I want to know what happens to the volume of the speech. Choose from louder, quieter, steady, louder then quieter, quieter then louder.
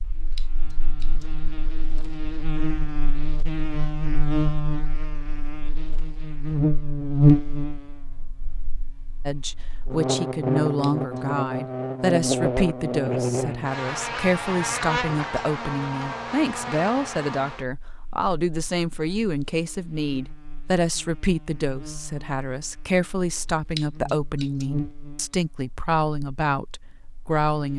steady.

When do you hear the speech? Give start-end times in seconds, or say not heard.
9.2-27.7.